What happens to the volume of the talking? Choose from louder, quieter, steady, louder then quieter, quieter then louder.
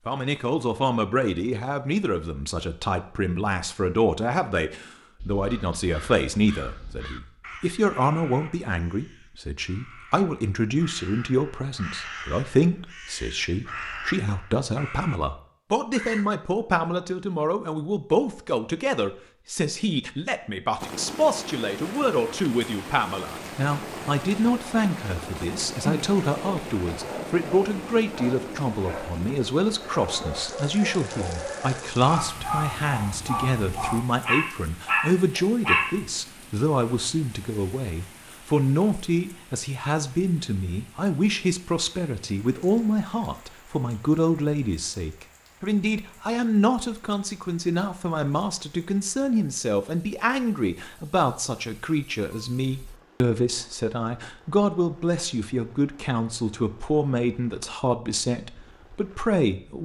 steady.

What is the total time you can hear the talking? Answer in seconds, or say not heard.
60 s.